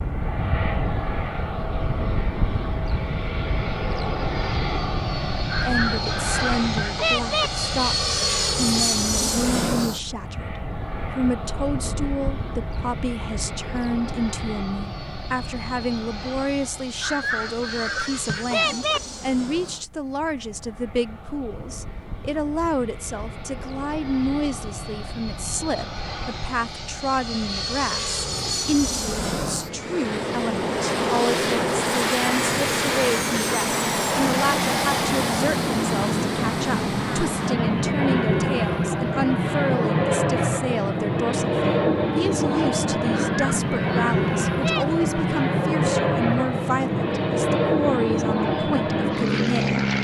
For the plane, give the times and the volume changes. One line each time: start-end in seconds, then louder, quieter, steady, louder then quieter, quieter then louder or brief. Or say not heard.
0.0-49.9 quieter then louder.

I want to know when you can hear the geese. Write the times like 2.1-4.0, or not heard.
5.5-7.5, 17.0-19.0, 43.2-45.0.